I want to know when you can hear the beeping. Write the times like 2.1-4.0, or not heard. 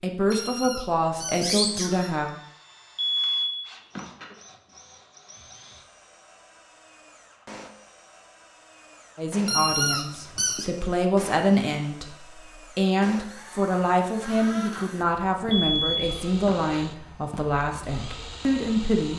3.0-4.3, 15.5-16.8.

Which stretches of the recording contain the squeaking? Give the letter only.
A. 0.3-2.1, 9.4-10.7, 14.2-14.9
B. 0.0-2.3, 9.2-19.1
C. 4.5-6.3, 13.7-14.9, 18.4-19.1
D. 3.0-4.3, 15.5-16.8
A.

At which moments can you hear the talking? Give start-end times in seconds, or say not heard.
0.0-2.3, 9.2-19.1.